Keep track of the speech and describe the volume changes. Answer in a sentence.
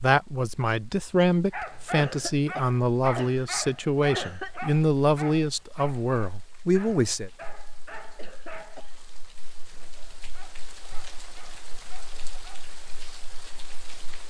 The loudness of the speech stays about the same.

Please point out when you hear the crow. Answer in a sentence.
You can't hear the crow here.